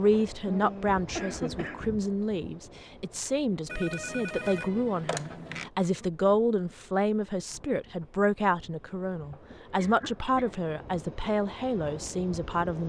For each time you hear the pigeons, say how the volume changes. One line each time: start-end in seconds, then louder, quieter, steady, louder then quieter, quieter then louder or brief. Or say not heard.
not heard.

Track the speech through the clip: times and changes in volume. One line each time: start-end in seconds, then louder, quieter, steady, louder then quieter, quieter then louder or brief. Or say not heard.
0.0-12.8 steady.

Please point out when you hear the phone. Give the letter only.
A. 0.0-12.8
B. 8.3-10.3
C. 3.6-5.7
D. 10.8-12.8
C.